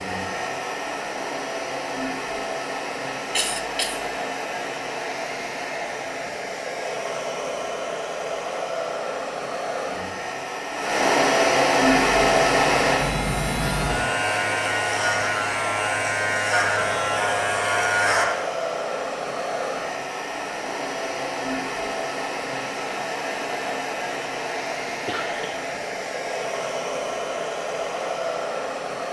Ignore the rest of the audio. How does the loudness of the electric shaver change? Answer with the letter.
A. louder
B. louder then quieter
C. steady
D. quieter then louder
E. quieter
A.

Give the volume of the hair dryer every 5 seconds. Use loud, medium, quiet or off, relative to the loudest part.
medium, medium, loud, medium, medium, medium.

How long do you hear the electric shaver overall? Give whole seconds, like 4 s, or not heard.
6 s.